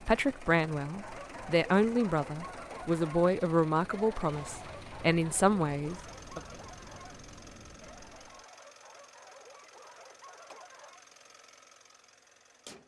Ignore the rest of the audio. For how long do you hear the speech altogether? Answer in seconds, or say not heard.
6 s.